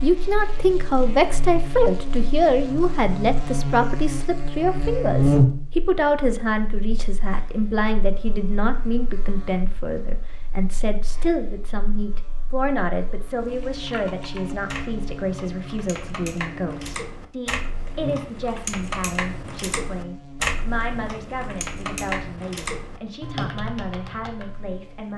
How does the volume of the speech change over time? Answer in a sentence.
The loudness of the speech goes down.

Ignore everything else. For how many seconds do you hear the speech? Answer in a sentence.
The speech can be heard for 25 seconds in total.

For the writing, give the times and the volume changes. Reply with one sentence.
You can't hear the writing here.